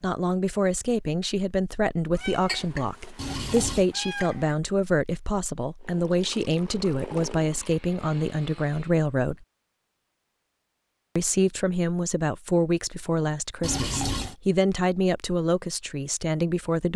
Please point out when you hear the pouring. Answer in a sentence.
The pouring can be heard from 3.1 to 3.9 s, from 6.0 to 7.8 s and from 13.6 to 14.3 s.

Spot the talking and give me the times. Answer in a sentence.
You can hear the talking from 0.0 to 9.4 s and from 11.2 to 16.9 s.